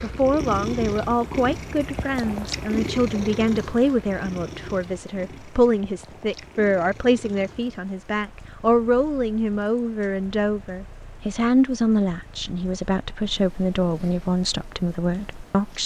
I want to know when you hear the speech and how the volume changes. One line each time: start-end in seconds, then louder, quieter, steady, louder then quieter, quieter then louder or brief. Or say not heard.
0.0-15.8 steady.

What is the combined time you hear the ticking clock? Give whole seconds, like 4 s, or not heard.
not heard.